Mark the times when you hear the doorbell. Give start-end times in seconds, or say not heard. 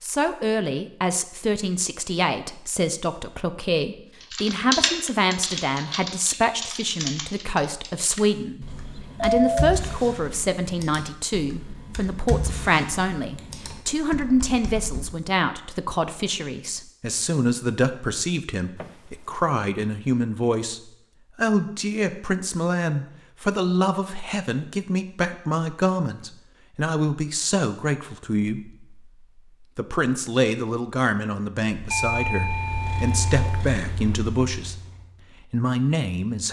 8.7-9.8, 18.8-19.4, 31.9-33.6.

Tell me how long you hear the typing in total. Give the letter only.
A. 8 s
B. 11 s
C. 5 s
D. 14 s
B.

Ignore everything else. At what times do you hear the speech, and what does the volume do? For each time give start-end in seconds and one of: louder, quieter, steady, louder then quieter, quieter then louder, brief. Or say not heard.
0.0-34.8 steady
35.4-36.4 brief.